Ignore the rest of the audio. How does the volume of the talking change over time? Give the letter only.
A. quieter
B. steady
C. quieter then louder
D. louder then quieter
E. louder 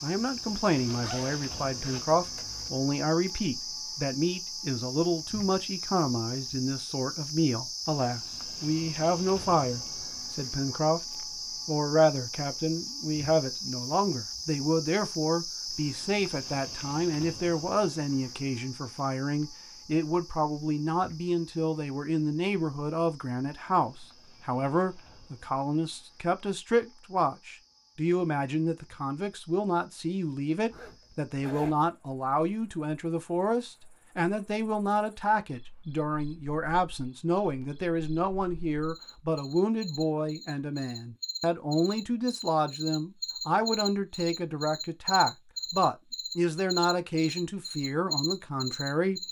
B.